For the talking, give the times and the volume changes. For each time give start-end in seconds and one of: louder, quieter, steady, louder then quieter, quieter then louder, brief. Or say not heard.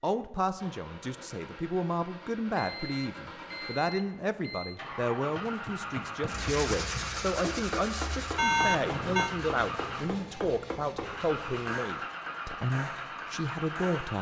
0.0-14.1 steady.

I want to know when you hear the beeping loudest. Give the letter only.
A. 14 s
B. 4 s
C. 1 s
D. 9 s
D.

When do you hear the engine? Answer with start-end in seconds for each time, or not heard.
0.0-14.1.